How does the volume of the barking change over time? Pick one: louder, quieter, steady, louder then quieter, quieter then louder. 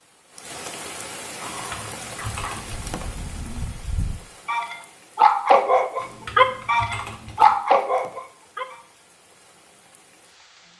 louder.